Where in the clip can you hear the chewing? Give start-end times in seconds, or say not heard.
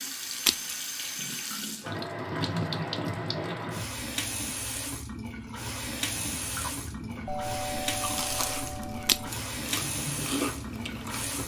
6.1-11.4.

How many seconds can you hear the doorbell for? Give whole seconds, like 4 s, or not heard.
2 s.